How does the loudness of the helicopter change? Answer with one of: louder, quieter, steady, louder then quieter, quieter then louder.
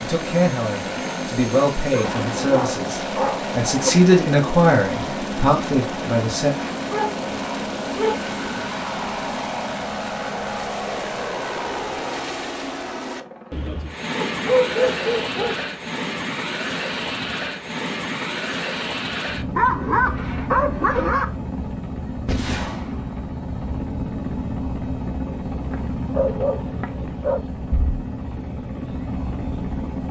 steady.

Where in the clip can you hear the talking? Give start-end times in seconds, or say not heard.
0.0-6.5.